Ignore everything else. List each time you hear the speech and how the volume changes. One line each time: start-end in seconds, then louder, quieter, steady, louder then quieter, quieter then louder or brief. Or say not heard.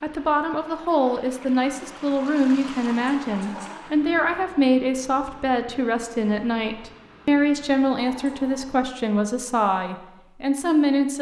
0.0-11.1 steady.